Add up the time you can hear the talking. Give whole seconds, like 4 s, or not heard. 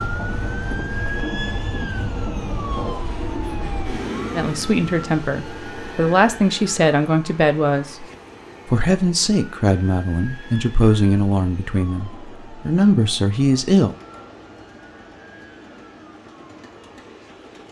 9 s.